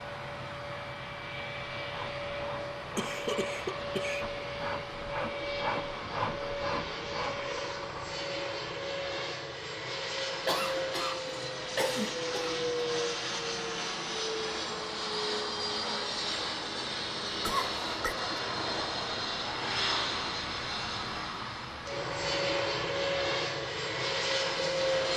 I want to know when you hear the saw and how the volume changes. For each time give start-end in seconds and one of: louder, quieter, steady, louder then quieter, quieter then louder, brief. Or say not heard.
1.8-8.1 louder.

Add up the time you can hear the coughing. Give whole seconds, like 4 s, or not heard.
4 s.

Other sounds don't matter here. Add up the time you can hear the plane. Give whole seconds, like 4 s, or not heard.
25 s.